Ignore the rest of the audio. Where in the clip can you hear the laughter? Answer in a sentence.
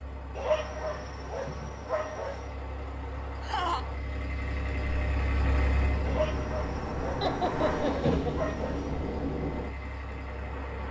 The laughter can be heard from 3.4 to 3.9 s and from 7.2 to 8.6 s.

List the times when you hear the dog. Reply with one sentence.
The dog can be heard from 0.3 to 2.5 s and from 6.0 to 8.9 s.